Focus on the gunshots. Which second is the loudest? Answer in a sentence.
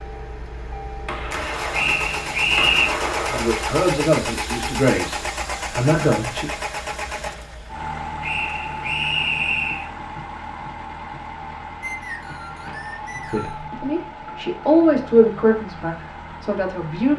The loudest moment of the gunshots is at 3 seconds.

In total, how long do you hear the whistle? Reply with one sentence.
You can hear the whistle for 5 seconds altogether.